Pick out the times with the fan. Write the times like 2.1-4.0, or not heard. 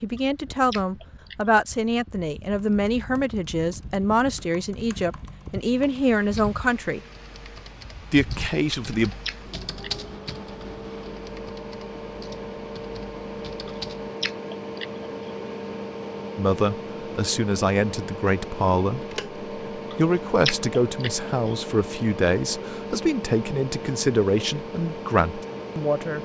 0.0-26.2.